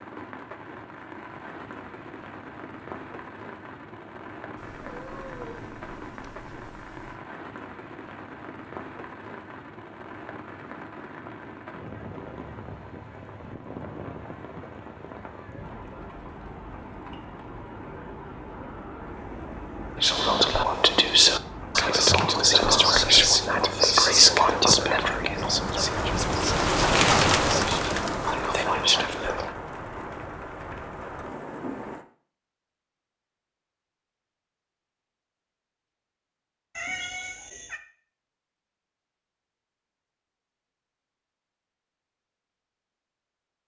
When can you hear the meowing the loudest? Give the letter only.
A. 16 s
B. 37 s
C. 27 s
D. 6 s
B.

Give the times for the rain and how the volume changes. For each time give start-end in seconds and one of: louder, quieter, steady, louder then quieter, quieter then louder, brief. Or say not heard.
0.0-32.0 louder.